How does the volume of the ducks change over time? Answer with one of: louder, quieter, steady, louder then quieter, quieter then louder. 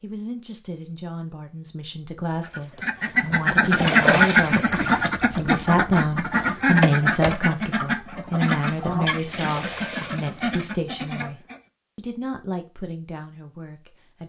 quieter.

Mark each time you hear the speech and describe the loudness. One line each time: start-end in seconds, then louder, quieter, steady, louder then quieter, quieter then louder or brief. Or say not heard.
0.0-14.2 louder then quieter.